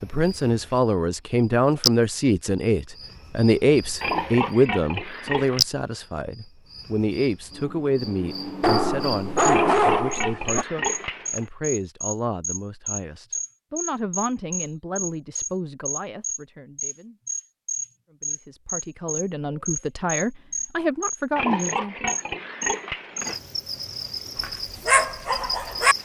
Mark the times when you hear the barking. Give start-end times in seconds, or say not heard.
8.6-10.7, 24.4-25.9.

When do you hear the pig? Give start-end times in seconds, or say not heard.
4.0-5.6, 9.5-11.4, 21.4-23.4.